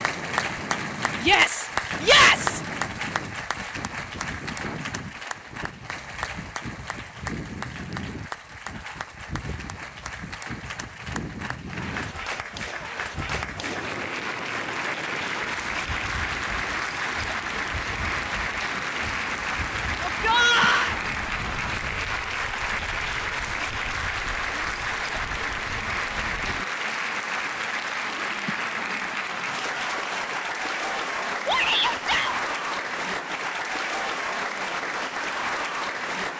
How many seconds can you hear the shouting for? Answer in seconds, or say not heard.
3 s.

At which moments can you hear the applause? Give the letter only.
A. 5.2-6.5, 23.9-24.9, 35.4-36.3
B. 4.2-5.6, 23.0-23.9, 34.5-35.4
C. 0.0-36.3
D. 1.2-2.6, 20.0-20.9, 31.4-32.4
C.